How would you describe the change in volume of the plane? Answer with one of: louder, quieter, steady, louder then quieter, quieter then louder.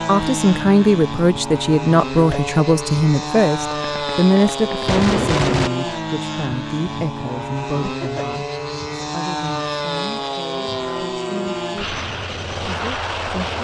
steady.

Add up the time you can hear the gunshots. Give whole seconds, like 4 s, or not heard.
2 s.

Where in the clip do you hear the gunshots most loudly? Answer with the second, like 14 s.
5 s.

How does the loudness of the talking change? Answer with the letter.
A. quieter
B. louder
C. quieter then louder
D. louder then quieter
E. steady
A.